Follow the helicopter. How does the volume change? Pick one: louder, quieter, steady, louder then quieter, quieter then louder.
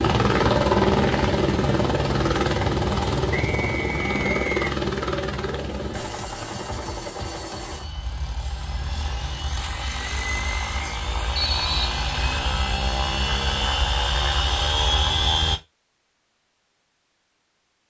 quieter then louder.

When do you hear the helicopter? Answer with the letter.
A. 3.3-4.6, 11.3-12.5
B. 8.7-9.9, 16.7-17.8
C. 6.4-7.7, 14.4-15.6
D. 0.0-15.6
D.